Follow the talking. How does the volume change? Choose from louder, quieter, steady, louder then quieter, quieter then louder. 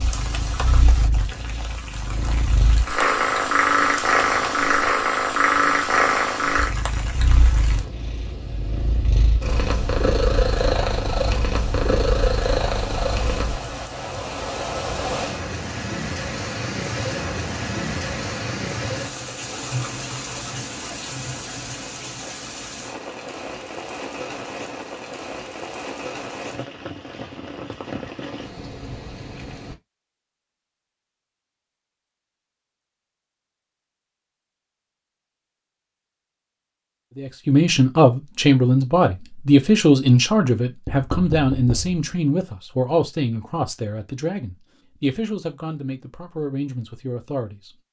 quieter.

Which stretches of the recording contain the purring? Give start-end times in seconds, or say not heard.
0.0-13.6.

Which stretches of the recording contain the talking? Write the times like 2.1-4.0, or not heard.
37.1-47.8.